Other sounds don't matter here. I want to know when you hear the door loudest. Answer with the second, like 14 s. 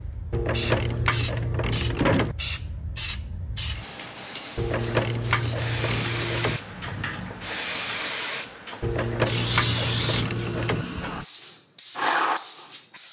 2 s.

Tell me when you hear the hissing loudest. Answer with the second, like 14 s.
10 s.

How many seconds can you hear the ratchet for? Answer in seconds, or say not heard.
6 s.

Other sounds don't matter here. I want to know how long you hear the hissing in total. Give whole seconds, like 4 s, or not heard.
13 s.